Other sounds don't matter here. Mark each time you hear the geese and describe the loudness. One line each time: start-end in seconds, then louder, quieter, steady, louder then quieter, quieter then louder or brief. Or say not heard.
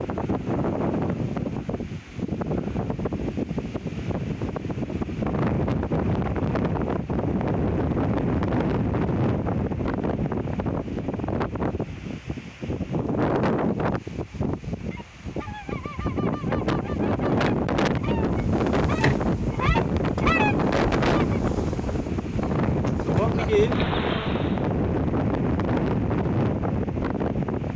14.8-21.5 louder.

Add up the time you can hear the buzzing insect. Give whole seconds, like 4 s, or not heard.
6 s.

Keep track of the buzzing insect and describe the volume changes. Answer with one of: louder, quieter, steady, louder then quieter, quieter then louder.
quieter then louder.